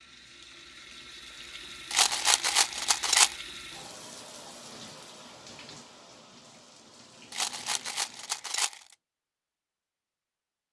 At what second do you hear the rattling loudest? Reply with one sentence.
The loudest moment of the rattling is at 3 seconds.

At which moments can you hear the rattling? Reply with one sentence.
The rattling can be heard from 1.9 to 3.4 s and from 7.3 to 8.8 s.